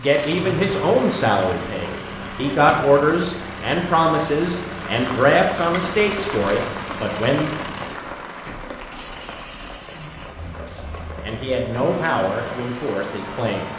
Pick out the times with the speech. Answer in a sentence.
The speech can be heard from 0.0 to 7.5 s and from 10.6 to 13.7 s.